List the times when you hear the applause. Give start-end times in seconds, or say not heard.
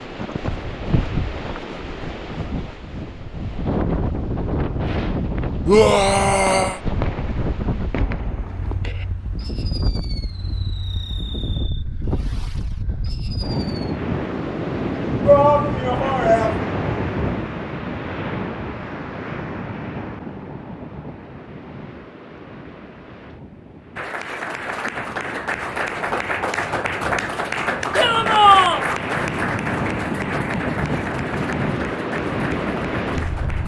23.9-33.6.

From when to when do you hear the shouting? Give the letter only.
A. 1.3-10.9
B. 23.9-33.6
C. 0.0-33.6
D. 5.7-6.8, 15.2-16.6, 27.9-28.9
D.